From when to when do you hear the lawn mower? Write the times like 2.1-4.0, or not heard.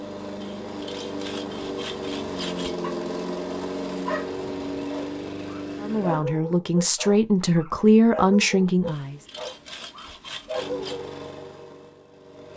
0.0-6.2, 10.5-12.5.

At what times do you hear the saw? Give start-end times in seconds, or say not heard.
0.4-2.8, 8.8-11.0.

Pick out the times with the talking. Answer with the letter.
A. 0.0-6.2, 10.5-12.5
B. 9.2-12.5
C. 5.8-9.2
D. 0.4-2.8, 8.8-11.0
C.